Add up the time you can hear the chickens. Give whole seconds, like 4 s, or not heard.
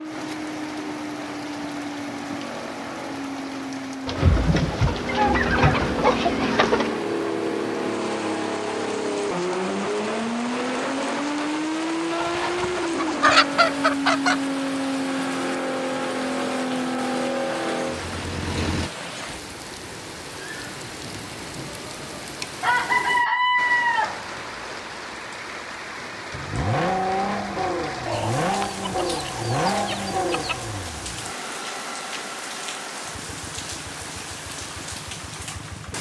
10 s.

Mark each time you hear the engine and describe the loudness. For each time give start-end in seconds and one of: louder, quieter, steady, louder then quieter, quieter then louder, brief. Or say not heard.
0.0-18.9 louder
26.3-35.9 quieter.